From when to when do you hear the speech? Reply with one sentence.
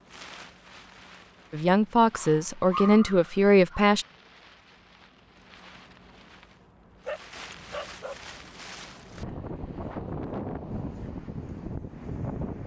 The speech can be heard from 1.5 to 4.0 s.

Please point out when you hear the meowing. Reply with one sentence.
You can't hear the meowing here.